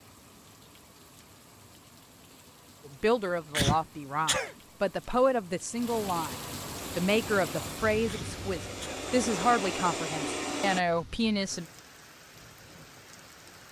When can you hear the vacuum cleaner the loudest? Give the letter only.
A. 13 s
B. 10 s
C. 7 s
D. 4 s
B.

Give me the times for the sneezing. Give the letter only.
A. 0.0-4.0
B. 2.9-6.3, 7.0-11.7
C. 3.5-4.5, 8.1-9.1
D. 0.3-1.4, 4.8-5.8
C.